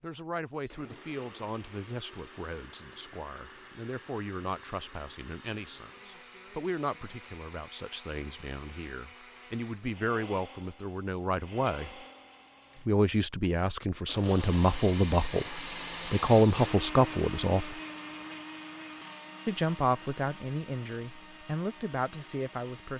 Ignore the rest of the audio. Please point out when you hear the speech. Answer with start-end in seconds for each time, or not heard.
0.0-11.9, 12.8-17.8, 19.4-22.9.